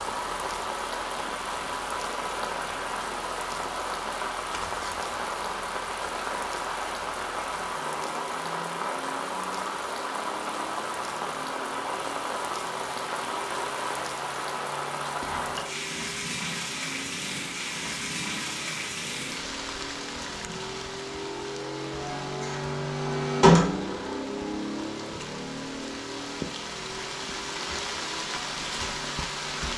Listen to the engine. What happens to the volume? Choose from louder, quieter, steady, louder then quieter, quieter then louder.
louder.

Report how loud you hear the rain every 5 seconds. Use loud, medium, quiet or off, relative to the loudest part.
loud, loud, loud, loud, medium, loud.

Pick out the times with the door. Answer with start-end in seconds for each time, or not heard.
22.4-23.9.